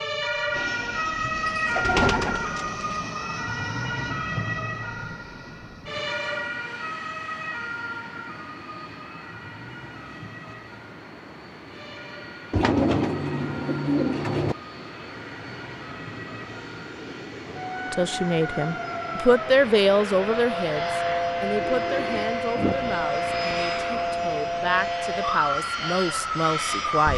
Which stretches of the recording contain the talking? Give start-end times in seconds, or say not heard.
17.9-27.1.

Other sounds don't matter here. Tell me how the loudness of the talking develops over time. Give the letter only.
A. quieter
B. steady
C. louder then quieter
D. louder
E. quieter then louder
A.